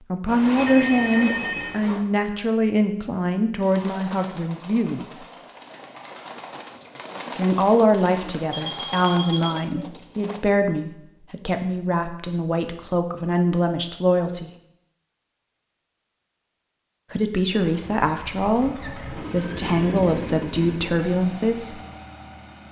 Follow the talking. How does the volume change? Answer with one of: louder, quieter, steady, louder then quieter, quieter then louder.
steady.